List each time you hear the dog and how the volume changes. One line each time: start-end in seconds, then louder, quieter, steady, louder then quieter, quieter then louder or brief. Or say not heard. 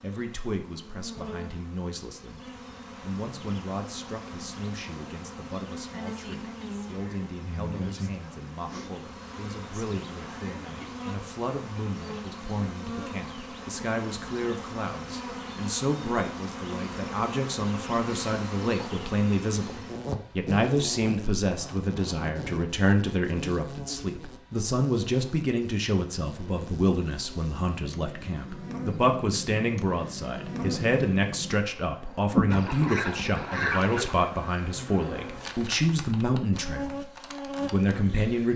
not heard.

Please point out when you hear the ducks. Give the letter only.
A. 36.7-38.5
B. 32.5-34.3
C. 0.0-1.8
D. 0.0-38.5
B.